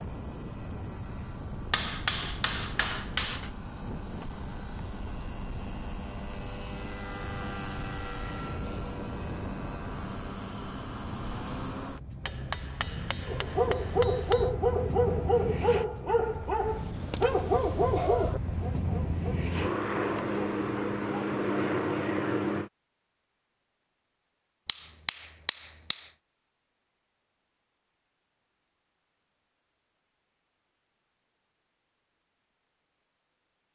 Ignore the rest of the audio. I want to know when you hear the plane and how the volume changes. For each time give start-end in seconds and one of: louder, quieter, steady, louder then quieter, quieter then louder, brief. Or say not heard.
0.0-22.7 louder.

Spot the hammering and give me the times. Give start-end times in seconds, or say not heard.
1.7-3.5, 12.2-14.5, 24.6-26.1.